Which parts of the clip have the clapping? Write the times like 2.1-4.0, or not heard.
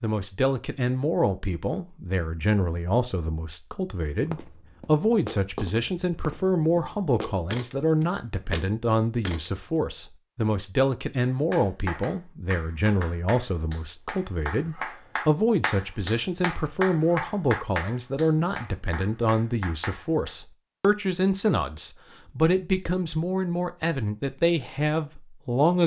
11.3-20.4.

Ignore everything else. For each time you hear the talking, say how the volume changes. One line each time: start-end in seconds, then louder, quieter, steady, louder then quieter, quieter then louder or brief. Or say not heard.
0.0-25.8 steady.